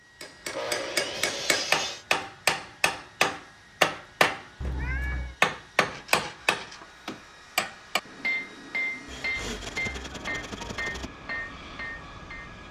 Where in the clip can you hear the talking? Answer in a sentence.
You can't hear the talking here.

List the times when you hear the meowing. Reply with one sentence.
The meowing can be heard from 4.6 to 5.3 s.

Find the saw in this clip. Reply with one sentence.
The saw can be heard from 0.5 to 2.0 s, from 5.8 to 7.0 s and from 9.1 to 11.1 s.